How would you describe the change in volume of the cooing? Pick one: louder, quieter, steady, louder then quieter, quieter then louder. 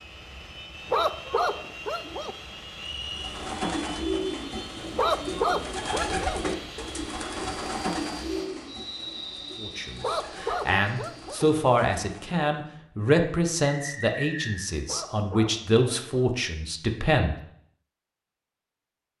quieter.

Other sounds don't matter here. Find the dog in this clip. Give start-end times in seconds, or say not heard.
0.9-2.4, 5.0-6.4, 10.0-11.4, 14.8-16.1.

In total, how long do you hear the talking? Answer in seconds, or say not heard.
8 s.